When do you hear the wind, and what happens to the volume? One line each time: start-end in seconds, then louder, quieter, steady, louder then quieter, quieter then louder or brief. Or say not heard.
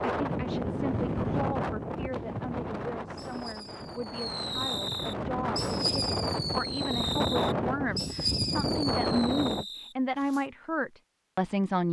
0.0-9.7 quieter then louder.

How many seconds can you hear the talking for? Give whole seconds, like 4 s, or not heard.
12 s.